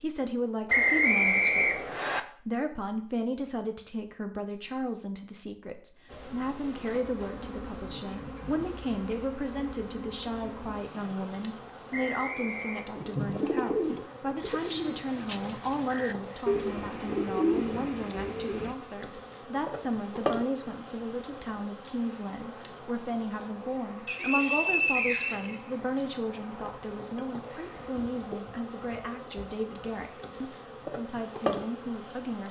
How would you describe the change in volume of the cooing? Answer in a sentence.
The loudness of the cooing goes down, then up.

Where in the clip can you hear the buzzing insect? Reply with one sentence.
The buzzing insect can be heard from 6.0 to 32.4 s.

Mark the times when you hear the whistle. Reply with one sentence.
You can hear the whistle from 0.7 to 2.2 s, from 11.9 to 12.8 s and from 24.1 to 26.1 s.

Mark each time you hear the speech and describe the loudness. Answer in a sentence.
The speech can be heard from 0.0 to 32.4 s, at a steady volume.